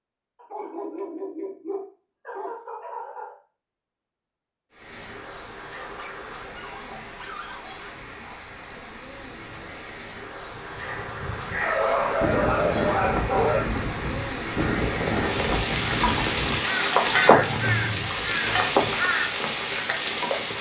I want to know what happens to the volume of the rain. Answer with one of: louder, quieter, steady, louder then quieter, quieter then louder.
louder.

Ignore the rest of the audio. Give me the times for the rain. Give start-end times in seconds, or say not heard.
4.7-20.5.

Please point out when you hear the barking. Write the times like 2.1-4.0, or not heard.
0.3-3.4, 6.0-7.8, 11.6-13.6, 17.2-18.9.